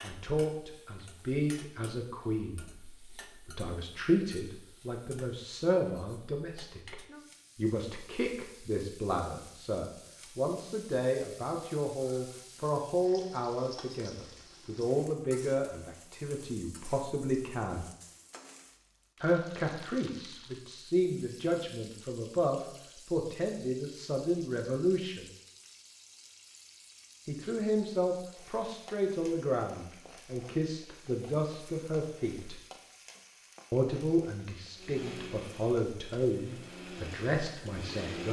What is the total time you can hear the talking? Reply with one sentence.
You can hear the talking for 34 seconds altogether.